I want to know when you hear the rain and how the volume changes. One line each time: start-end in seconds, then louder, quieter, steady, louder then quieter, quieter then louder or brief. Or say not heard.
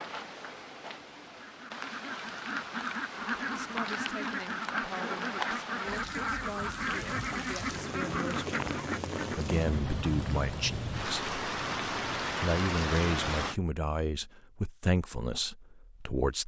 0.0-13.6 louder.